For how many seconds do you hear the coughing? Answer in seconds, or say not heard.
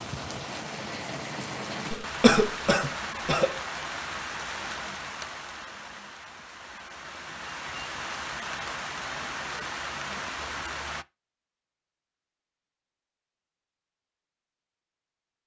2 s.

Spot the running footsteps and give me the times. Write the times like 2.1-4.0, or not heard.
not heard.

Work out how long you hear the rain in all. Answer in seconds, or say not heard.
11 s.